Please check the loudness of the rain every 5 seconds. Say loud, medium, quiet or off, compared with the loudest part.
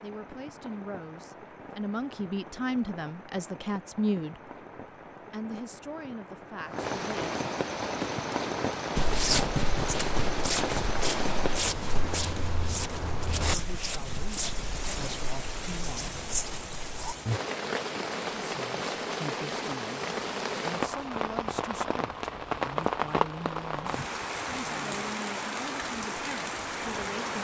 quiet, loud, loud, loud, loud, loud.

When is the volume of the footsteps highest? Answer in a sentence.
The loudest moment of the footsteps is at 9 seconds.